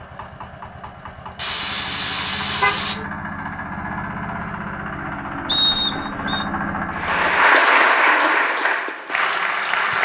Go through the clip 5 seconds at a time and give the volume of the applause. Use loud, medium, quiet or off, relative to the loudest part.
off, loud.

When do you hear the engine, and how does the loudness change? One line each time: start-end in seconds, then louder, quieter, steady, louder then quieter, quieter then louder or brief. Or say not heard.
0.0-7.5 louder.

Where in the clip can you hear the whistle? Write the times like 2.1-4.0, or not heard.
5.5-6.5.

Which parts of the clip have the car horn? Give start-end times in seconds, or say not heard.
1.4-3.0.